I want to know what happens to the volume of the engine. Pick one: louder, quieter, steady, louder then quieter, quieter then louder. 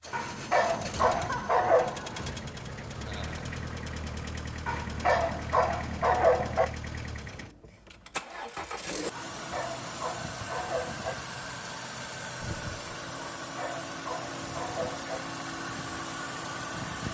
steady.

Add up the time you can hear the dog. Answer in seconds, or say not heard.
8 s.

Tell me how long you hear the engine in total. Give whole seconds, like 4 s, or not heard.
17 s.